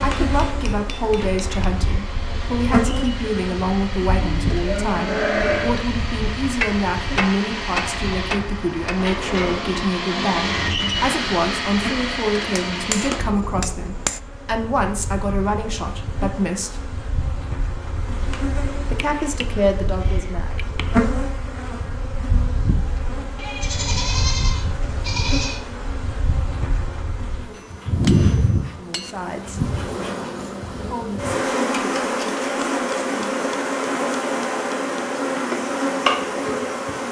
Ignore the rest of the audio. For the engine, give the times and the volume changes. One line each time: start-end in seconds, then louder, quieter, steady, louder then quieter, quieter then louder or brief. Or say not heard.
0.0-13.3 louder.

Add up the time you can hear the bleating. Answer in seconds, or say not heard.
4 s.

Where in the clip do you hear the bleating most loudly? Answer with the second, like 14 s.
5 s.